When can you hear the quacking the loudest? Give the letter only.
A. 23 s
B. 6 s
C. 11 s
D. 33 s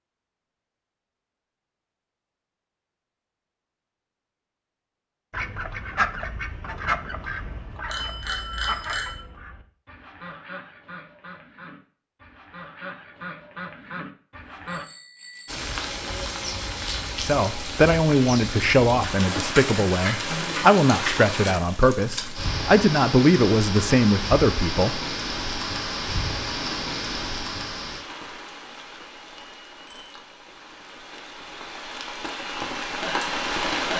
B.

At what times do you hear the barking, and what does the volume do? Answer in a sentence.
You can't hear the barking here.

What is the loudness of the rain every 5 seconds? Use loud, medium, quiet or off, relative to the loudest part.
off, off, off, loud, loud, loud, loud.